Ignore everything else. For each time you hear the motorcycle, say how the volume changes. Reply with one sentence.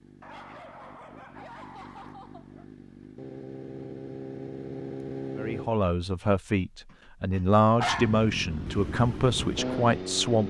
You can hear the motorcycle from 0.0 to 5.7 s, getting louder; and briefly from 7.9 to 10.4 s.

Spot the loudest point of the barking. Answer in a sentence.
The loudest moment of the barking is at 8 seconds.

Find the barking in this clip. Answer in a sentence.
You can hear the barking from 0.2 to 2.6 s and from 6.9 to 8.2 s.